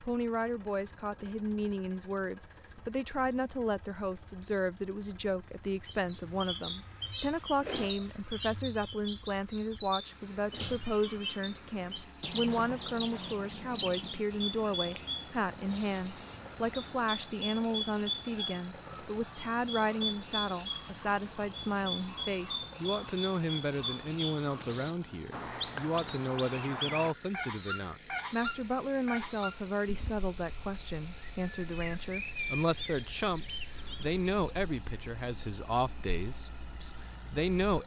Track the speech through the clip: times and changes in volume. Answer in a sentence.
You can hear the speech from 0.0 to 37.8 s, at a steady volume.